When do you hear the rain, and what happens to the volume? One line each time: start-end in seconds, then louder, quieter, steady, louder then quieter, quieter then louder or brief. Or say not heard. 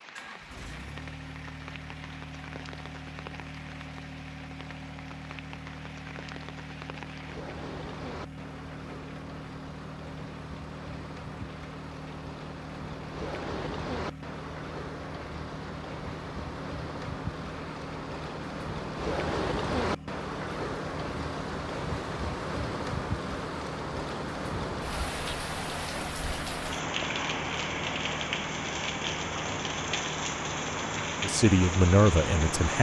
0.0-32.7 louder.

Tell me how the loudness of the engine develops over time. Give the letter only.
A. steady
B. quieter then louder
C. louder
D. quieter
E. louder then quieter
A.